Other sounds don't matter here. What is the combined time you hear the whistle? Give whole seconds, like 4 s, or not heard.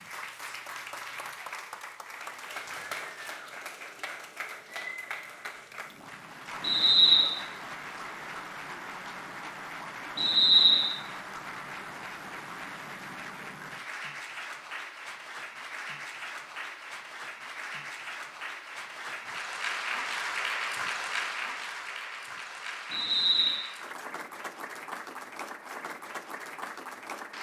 2 s.